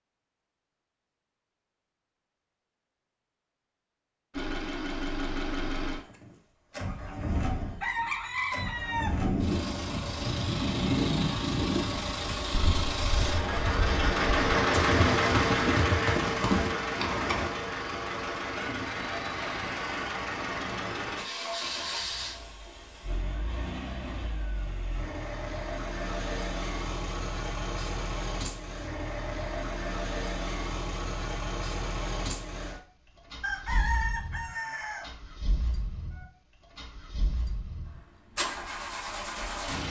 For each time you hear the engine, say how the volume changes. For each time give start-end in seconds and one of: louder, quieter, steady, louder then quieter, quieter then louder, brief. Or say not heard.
4.3-39.8 louder then quieter.